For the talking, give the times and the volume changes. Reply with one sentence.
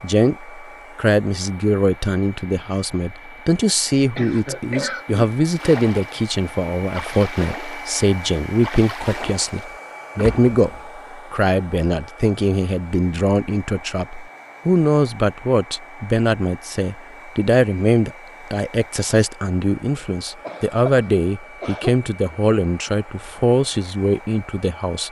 You can hear the talking from 0.0 to 25.0 s, at a steady volume.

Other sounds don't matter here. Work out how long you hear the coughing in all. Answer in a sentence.
You can hear the coughing for 3 seconds altogether.